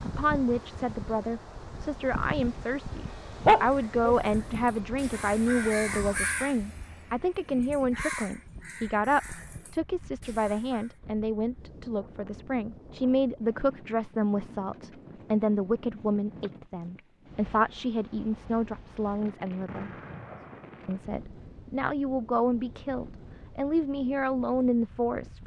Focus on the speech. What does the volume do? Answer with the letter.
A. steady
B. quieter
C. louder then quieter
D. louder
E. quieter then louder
A.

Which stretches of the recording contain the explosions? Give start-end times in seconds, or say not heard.
19.6-21.0.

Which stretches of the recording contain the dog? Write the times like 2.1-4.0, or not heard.
3.5-4.2.